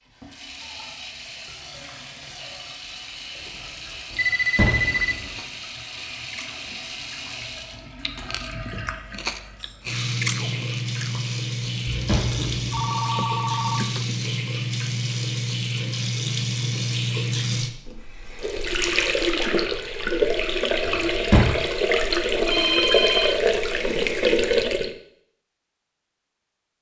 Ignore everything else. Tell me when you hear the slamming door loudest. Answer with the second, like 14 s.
21 s.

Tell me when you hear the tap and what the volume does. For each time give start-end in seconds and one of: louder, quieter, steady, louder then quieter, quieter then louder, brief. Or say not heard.
0.0-24.9 louder.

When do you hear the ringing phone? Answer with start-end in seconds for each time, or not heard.
4.1-5.2, 12.7-14.2, 22.4-23.4.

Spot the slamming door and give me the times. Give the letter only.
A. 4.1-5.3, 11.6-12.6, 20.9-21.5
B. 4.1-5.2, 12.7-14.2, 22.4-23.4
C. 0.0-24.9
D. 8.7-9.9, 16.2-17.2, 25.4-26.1
A.